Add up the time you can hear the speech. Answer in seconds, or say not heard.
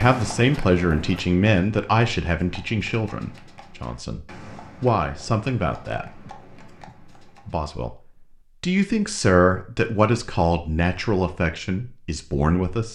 11 s.